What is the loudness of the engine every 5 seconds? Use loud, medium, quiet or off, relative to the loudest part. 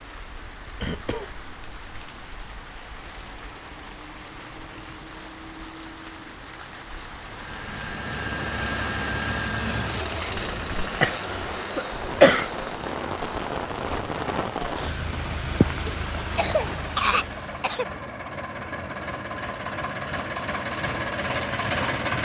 off, loud, medium, medium, loud.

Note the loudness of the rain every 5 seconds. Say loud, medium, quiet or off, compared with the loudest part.
medium, medium, loud, loud, off.